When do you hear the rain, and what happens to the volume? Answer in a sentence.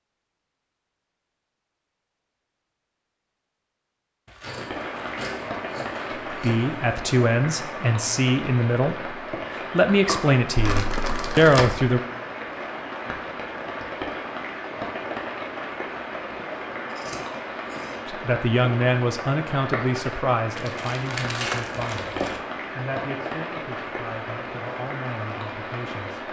You can hear the rain from 4.5 to 26.2 s, at a steady volume.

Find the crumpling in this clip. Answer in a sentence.
You can hear the crumpling from 4.2 to 6.3 s, from 10.6 to 11.7 s and from 20.6 to 22.4 s.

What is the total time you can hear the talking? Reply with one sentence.
The talking can be heard for 14 seconds in total.